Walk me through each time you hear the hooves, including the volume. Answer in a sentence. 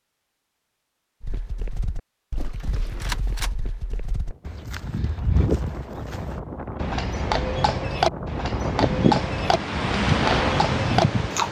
You can hear the hooves from 1.2 to 11.4 s, getting louder.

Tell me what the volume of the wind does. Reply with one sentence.
The volume of the wind goes up.